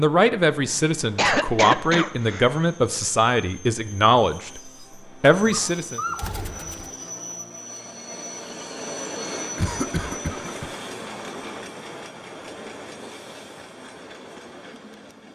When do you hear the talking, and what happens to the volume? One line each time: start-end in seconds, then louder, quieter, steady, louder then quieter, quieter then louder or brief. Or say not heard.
0.0-4.6 steady
5.2-6.0 brief.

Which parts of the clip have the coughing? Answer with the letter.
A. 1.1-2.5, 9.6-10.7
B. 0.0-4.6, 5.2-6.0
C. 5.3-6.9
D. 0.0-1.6
A.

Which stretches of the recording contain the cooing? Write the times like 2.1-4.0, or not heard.
5.3-6.9.